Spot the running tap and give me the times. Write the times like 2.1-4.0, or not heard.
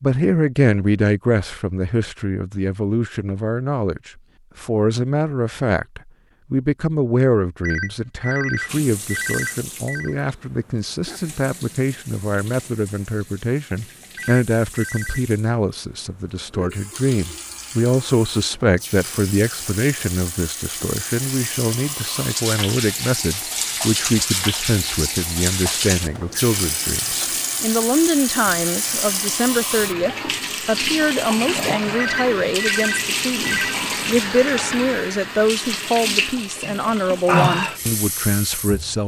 8.7-39.0.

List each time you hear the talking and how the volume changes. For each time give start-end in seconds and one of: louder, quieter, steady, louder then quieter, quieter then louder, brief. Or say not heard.
0.0-39.0 steady.